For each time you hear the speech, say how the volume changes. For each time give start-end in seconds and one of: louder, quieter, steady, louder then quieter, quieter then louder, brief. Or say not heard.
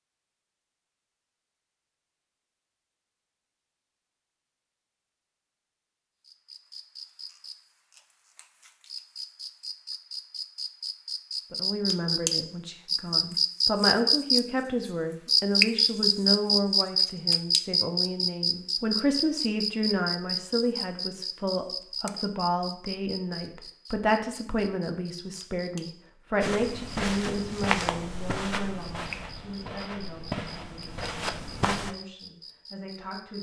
11.5-33.3 quieter.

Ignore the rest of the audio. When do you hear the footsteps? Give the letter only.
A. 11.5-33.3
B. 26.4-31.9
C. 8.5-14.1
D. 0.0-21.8
B.